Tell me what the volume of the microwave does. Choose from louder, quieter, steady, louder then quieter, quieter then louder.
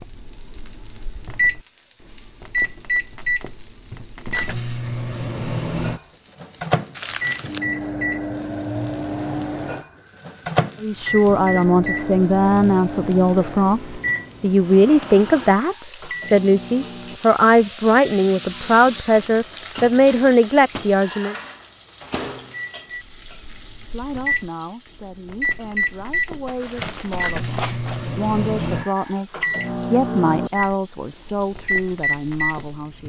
quieter then louder.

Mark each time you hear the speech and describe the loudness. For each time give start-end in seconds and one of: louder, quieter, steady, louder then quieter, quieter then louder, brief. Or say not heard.
10.8-21.4 steady
23.8-33.0 louder then quieter.